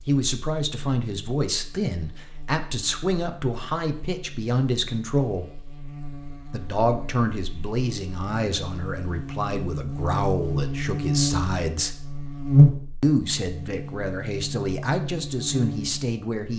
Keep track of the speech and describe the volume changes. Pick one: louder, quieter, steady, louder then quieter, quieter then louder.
steady.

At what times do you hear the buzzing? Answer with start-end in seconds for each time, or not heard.
0.0-16.5.